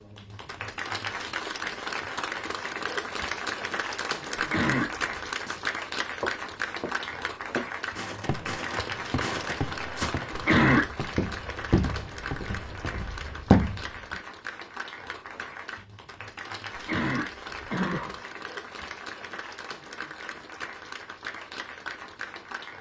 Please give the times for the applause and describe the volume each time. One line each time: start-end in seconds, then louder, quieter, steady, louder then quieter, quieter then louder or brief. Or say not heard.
0.0-22.7 quieter.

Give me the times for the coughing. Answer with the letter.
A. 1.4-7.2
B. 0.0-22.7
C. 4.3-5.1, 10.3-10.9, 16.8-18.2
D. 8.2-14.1
C.